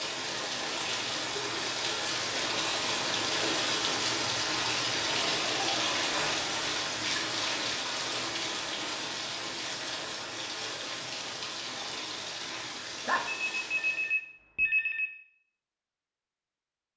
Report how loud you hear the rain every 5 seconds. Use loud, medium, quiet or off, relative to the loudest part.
loud, loud, medium, off.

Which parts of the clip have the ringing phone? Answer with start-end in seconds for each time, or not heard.
6.1-6.5, 13.0-15.2.